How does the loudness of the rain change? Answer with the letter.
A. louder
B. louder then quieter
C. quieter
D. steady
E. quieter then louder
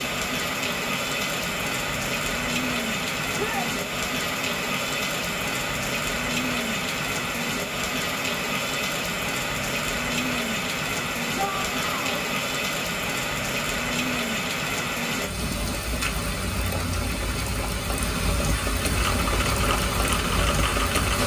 D.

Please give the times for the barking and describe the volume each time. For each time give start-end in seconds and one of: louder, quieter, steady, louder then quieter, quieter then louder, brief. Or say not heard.
not heard.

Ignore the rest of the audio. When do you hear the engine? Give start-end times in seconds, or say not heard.
18.9-21.2.